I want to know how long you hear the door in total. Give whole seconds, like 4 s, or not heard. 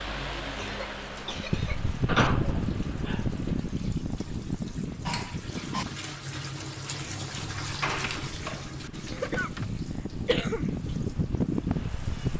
3 s.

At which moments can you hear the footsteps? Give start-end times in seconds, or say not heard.
not heard.